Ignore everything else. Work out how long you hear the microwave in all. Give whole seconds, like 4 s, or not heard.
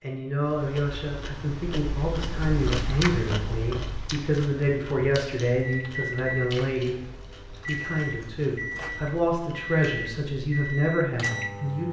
6 s.